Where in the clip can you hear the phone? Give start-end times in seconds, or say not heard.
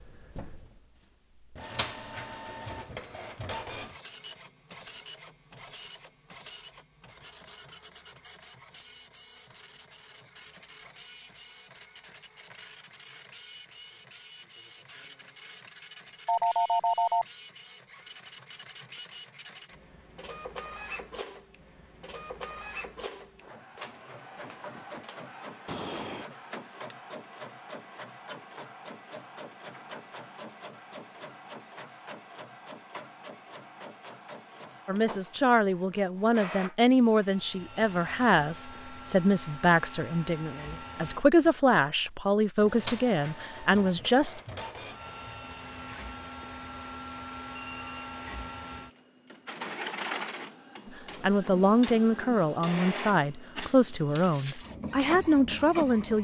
16.2-17.2, 25.6-26.2, 47.5-48.1.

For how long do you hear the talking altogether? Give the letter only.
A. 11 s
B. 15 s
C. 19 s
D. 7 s
B.